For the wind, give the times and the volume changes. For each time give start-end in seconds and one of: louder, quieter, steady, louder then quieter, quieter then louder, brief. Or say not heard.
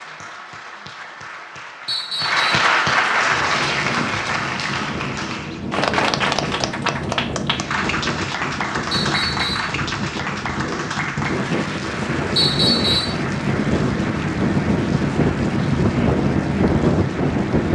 3.1-17.6 louder.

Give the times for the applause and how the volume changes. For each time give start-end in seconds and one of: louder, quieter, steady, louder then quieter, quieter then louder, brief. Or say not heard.
0.0-17.6 quieter.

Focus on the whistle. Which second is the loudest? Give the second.
13 s.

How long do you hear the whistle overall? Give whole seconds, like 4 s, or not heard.
2 s.